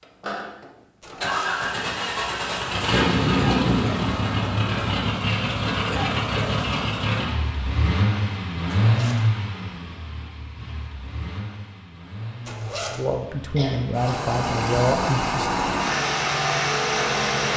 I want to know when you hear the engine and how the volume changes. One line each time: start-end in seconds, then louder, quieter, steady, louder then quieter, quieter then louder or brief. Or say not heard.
0.2-17.5 quieter then louder.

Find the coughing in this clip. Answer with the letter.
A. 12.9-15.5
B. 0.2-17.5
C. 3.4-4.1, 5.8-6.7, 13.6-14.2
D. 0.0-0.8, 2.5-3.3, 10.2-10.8
C.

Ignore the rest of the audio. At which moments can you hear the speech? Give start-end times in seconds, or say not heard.
12.9-15.5.